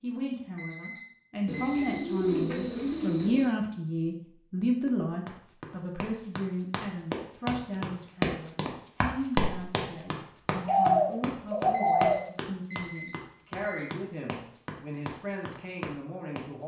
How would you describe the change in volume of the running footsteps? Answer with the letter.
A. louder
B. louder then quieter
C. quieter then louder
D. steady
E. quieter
B.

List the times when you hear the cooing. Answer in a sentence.
The cooing can be heard from 1.4 to 3.5 s and from 10.7 to 12.2 s.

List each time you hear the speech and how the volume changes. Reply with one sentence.
The speech can be heard from 0.0 to 16.6 s, getting quieter.